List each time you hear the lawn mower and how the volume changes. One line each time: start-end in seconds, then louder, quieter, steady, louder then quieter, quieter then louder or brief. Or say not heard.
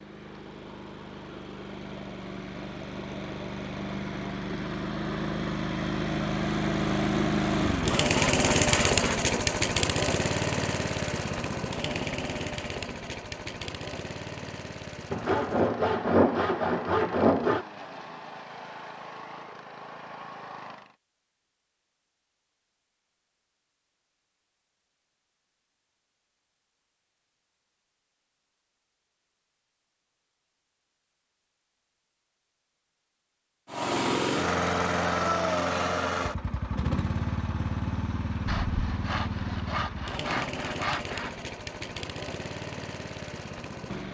0.0-20.9 louder then quieter
33.7-44.0 quieter.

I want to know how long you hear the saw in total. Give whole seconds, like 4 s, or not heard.
7 s.